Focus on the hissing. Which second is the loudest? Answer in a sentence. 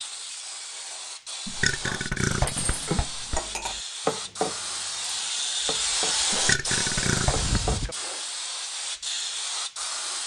The loudest moment of the hissing is at 6 seconds.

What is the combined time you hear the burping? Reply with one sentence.
You can hear the burping for 3 seconds altogether.